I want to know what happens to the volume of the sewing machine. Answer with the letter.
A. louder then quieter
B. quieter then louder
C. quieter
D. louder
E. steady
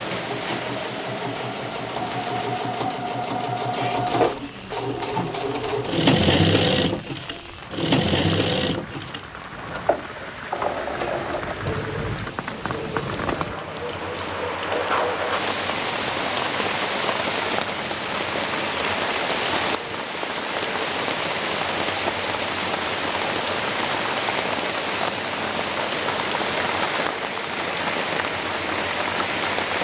C.